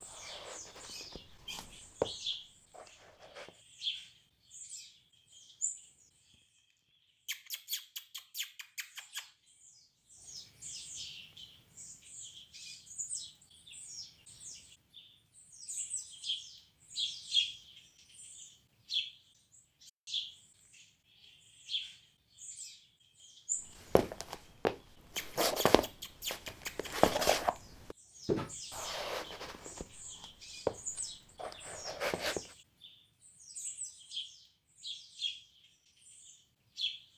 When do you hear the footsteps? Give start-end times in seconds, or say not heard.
0.0-3.6, 23.9-32.5.